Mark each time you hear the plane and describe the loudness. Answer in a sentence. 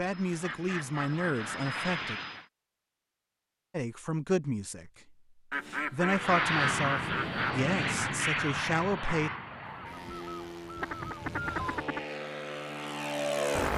The plane can be heard briefly from 0.0 to 2.5 s; and from 6.0 to 13.7 s, getting quieter then louder.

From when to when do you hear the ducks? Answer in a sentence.
You can hear the ducks from 0.4 to 2.5 s, from 5.5 to 7.5 s and from 9.7 to 12.0 s.